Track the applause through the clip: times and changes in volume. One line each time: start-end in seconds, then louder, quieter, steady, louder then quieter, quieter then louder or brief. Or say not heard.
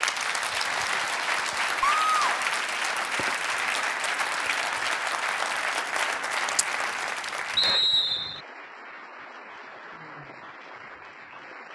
0.0-11.6 quieter.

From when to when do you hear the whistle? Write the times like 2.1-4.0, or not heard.
7.5-8.4.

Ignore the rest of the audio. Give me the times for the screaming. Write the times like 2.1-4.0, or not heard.
1.8-2.5.